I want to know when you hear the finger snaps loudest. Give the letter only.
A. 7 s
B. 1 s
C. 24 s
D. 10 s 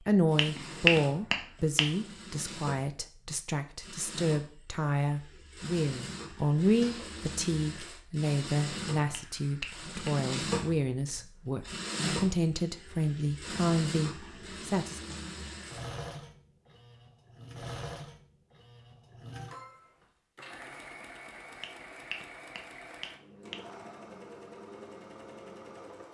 B.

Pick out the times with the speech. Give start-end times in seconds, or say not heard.
0.0-15.2.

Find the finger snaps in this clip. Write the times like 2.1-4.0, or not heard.
0.3-1.9, 9.1-10.2, 21.6-23.6.